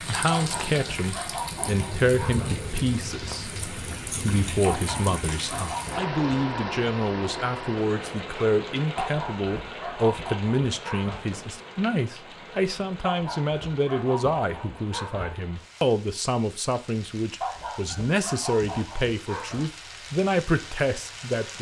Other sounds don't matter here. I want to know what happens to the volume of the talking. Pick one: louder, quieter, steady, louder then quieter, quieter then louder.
steady.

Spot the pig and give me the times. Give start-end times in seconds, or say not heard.
not heard.